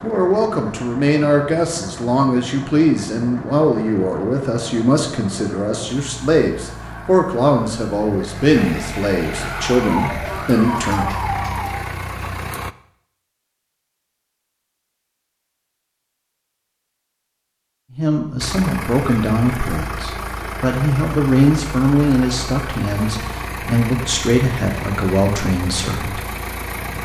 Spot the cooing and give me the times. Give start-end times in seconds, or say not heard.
not heard.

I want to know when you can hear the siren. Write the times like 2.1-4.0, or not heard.
9.4-11.8.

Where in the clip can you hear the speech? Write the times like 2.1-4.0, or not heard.
0.0-11.1, 17.9-26.2.